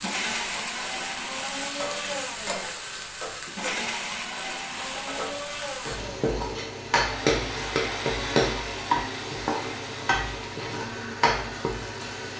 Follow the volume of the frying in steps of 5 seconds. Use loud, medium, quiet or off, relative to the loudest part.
medium, loud, loud.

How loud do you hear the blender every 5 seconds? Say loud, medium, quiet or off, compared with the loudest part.
loud, loud, medium.